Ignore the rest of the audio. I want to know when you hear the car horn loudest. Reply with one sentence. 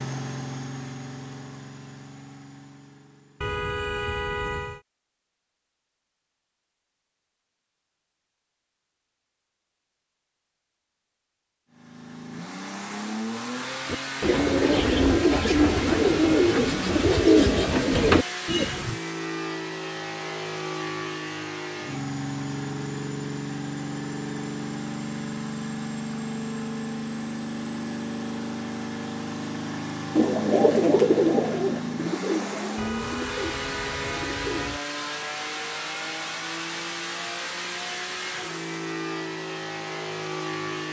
The volume of the car horn peaks at 4 seconds.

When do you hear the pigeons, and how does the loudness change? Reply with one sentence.
The pigeons can be heard from 13.8 to 18.9 s, at a steady volume; and from 30.1 to 34.8 s, getting quieter.